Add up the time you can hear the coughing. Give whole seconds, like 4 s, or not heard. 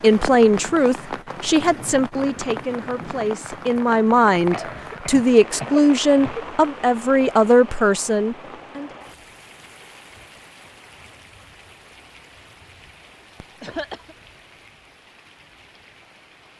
3 s.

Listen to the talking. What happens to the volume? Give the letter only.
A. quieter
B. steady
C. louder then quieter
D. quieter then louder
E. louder
D.